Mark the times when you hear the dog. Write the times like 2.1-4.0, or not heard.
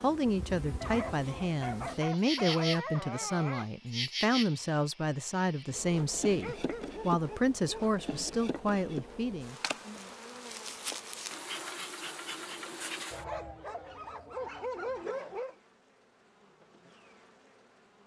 0.8-3.7, 6.4-8.3, 13.1-15.6.